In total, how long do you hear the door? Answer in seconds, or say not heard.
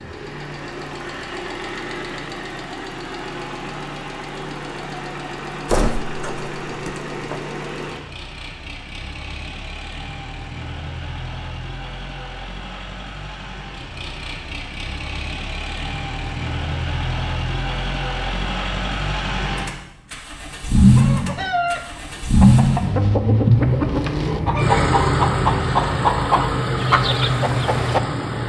2 s.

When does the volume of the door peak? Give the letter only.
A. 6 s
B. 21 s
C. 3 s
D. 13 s
A.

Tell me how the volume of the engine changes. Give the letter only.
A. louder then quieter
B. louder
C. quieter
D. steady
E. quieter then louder
B.